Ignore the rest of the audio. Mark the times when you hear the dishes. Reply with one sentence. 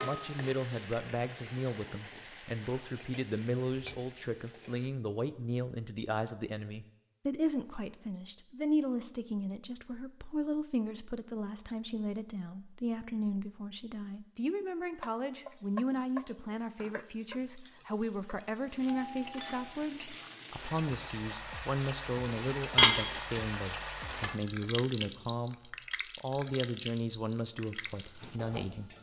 The dishes can be heard from 22.8 to 24.3 s.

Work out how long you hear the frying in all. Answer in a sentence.
The frying can be heard for 19 seconds in total.